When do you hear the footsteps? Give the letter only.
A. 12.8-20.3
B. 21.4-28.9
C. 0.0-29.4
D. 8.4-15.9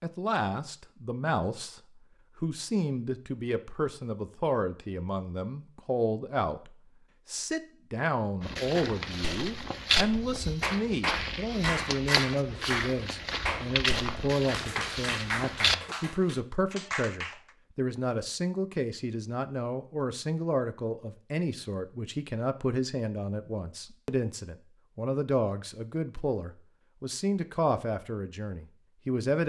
D.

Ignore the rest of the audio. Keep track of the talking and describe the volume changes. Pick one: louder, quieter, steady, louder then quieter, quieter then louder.
steady.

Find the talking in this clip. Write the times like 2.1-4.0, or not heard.
0.0-29.4.